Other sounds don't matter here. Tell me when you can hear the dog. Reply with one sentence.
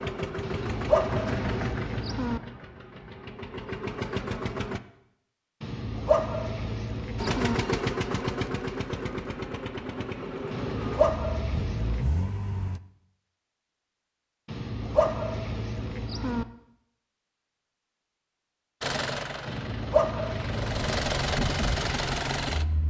You can hear the dog from 0.4 to 2.4 s, from 5.6 to 7.6 s, from 10.5 to 12.1 s, from 14.4 to 16.4 s and from 19.4 to 21.1 s.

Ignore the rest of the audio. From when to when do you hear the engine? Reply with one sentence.
You can hear the engine from 0.0 to 4.8 s, from 7.2 to 12.8 s and from 18.8 to 22.8 s.